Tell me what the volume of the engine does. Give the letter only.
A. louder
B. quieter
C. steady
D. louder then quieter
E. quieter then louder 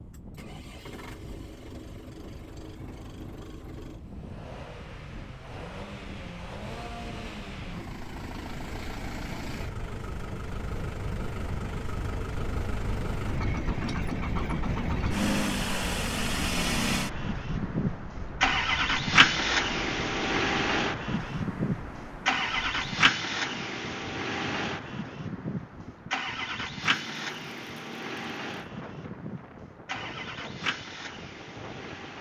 D.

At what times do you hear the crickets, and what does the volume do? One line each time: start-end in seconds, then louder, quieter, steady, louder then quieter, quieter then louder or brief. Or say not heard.
not heard.